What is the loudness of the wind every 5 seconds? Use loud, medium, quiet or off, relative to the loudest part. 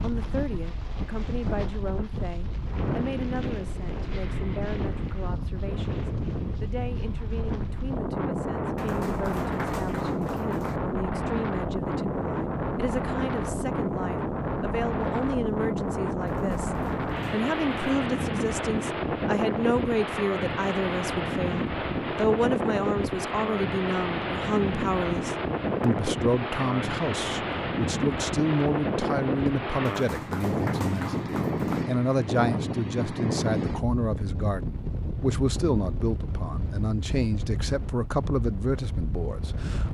medium, loud, loud, loud, loud, loud, loud, medium.